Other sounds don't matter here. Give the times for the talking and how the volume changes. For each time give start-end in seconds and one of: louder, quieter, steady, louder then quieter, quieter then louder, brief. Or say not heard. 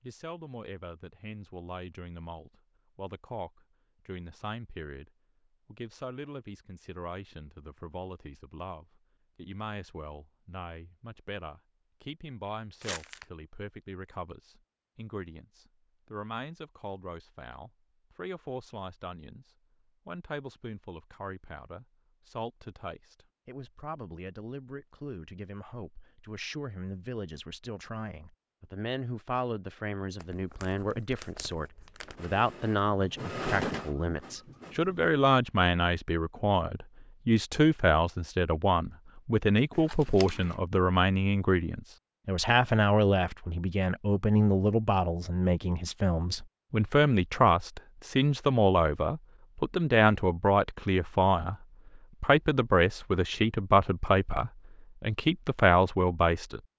0.0-56.6 louder.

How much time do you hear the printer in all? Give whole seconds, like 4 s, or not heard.
3 s.